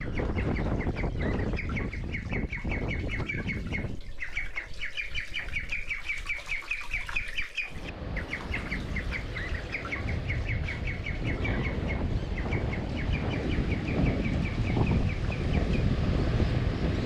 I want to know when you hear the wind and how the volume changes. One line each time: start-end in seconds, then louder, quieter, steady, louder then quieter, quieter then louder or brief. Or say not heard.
0.0-17.0 quieter then louder.